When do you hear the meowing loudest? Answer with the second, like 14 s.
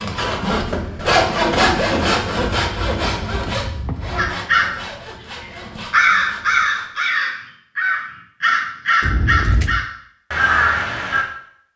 9 s.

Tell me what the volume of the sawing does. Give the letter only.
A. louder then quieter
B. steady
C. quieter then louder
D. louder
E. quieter
E.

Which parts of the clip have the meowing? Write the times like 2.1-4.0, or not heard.
2.5-4.3, 9.0-9.8.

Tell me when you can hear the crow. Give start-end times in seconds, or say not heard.
4.2-11.2.